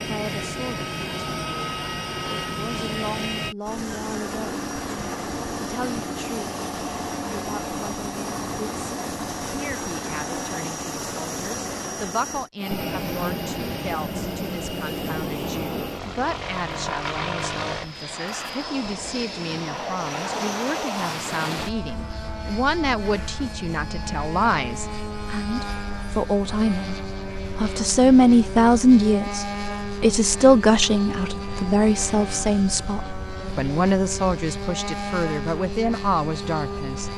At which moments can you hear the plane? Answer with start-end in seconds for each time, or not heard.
0.0-37.1.